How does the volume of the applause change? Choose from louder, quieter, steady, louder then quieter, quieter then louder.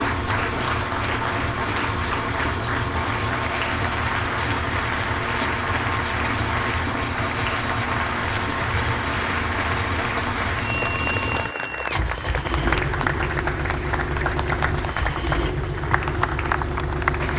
steady.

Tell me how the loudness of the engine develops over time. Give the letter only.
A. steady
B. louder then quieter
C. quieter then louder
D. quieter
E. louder
A.